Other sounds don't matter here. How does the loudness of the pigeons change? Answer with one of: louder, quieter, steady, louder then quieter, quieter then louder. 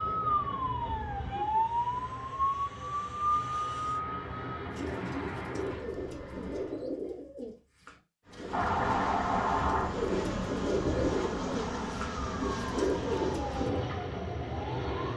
louder.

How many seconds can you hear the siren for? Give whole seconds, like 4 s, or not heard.
11 s.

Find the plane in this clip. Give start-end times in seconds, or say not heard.
0.0-7.0, 8.2-15.1.